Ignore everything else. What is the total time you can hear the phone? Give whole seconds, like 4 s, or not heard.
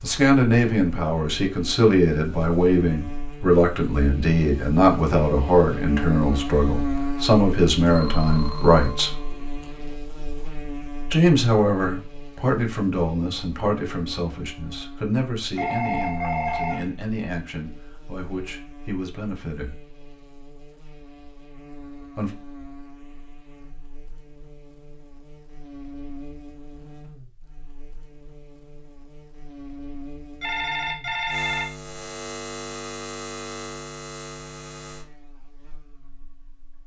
5 s.